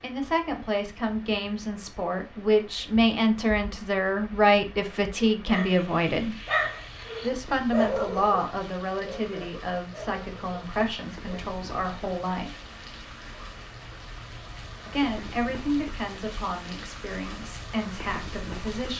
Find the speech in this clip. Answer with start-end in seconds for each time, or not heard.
0.0-6.3, 7.2-12.6, 14.8-18.9.